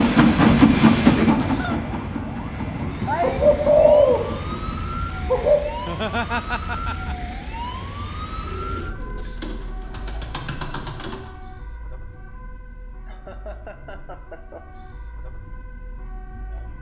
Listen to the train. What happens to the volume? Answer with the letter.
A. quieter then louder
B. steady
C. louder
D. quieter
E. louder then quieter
D.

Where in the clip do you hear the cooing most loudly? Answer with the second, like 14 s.
4 s.